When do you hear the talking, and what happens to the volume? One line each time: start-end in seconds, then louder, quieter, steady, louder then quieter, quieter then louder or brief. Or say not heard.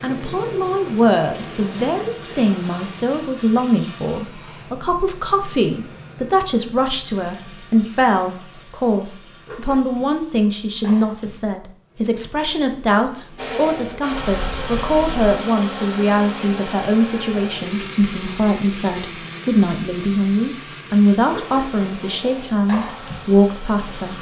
0.0-24.1 steady.